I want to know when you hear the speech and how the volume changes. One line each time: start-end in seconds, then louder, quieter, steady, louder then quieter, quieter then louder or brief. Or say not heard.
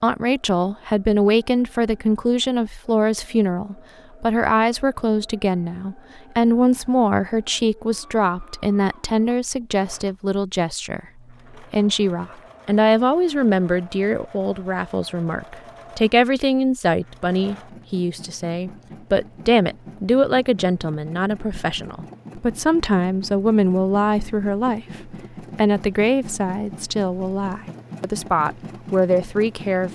0.0-11.0 steady
11.7-29.8 steady.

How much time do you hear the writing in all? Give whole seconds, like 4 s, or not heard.
not heard.